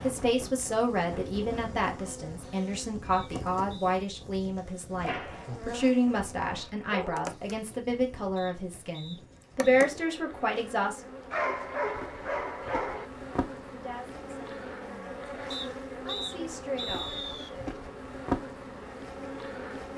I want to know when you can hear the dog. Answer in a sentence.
The dog can be heard from 5.0 to 7.2 s and from 11.3 to 13.1 s.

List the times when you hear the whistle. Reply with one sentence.
The whistle can be heard from 3.1 to 3.9 s, from 8.3 to 9.9 s and from 15.5 to 17.5 s.